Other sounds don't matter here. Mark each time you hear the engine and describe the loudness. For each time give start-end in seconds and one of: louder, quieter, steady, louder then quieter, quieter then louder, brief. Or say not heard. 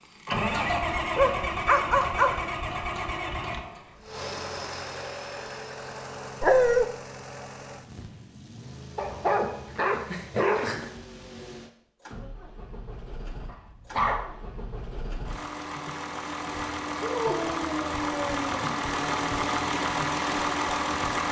0.1-21.2 quieter then louder.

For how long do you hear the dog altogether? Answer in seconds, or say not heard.
6 s.